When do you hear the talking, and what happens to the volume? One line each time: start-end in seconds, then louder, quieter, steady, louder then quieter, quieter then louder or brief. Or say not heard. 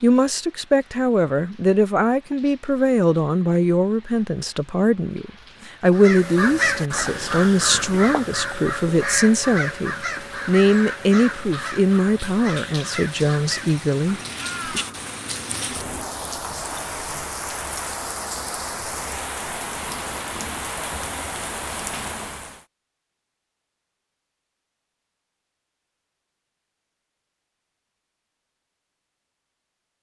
0.0-14.8 steady.